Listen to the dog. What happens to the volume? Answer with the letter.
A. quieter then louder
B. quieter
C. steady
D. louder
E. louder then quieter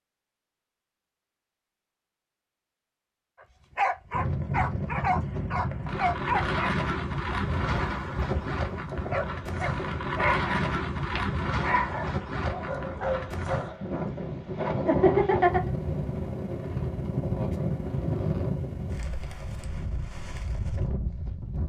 B.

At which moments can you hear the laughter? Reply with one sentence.
The laughter can be heard from 14.8 to 15.7 s.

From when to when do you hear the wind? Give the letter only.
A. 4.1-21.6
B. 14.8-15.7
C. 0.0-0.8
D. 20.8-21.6
A.